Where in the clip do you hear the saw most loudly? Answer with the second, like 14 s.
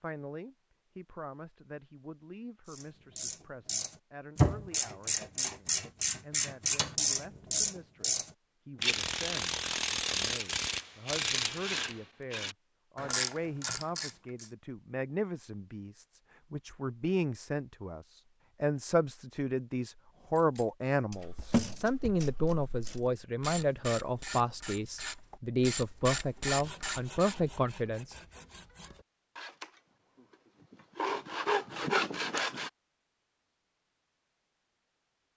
32 s.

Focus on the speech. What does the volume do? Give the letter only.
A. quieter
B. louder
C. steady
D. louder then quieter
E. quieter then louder
B.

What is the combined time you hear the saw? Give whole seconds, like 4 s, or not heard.
6 s.